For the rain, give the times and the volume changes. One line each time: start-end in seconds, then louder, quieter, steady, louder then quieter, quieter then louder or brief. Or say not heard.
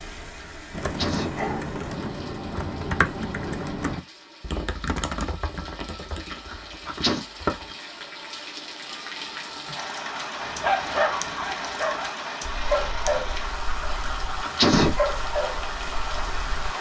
0.0-16.7 louder.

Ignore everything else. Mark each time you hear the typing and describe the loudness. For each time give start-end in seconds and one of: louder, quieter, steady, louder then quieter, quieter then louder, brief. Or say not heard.
0.7-7.8 quieter.